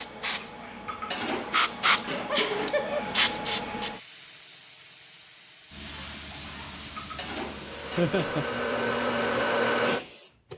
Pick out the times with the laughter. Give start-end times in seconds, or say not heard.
2.2-3.0, 8.0-8.4.